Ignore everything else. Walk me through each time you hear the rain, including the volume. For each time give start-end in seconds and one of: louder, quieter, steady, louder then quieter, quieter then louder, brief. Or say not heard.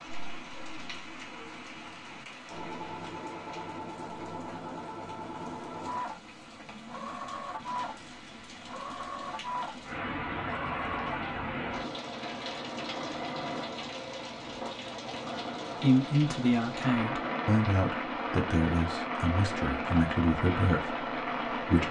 0.0-21.8 louder.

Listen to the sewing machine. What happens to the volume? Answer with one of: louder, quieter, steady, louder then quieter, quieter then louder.
steady.